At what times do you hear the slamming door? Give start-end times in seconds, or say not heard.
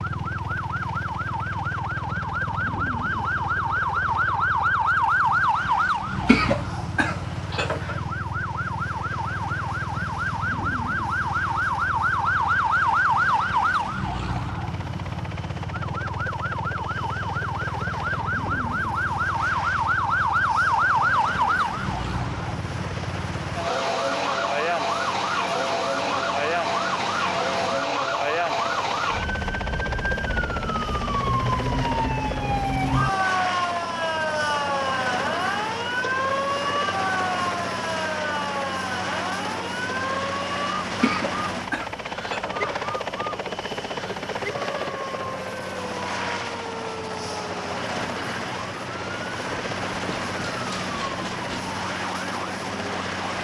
not heard.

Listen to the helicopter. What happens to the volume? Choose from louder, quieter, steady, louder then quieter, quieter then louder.
louder.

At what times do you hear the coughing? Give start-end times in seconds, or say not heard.
6.2-8.0, 41.0-43.0.